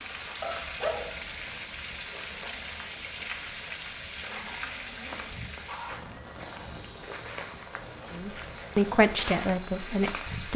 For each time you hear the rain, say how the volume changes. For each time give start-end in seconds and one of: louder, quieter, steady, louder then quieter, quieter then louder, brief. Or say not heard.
0.0-10.5 quieter.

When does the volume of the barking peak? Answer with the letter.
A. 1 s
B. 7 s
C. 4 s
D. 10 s
A.